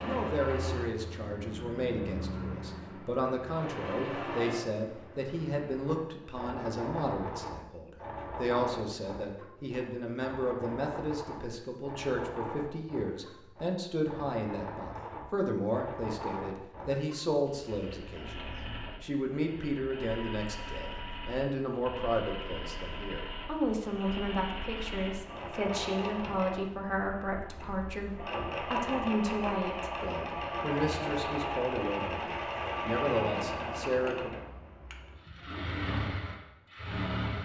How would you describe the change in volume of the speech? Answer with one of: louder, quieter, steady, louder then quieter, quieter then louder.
steady.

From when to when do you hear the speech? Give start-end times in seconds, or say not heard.
0.0-34.5.